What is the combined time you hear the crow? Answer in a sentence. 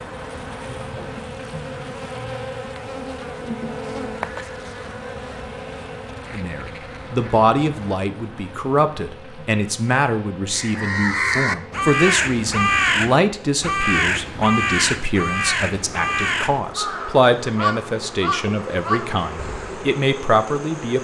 You can hear the crow for 9 seconds altogether.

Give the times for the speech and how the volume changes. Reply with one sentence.
The speech can be heard from 6.3 to 20.9 s, at a steady volume.